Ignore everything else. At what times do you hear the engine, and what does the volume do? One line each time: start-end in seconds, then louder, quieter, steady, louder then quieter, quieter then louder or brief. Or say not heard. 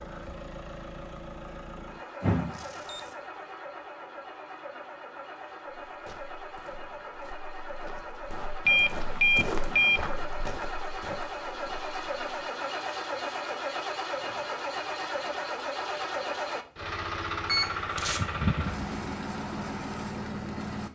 0.0-20.9 louder.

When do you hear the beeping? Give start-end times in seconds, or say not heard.
2.2-3.0, 8.7-10.1, 17.4-18.9.